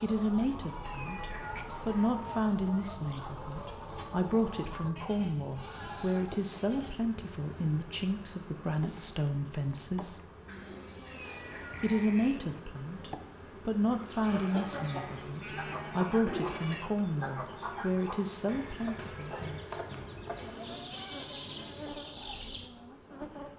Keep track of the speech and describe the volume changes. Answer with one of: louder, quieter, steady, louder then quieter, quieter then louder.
steady.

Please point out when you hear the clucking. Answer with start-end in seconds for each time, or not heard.
0.0-4.9, 13.8-22.7.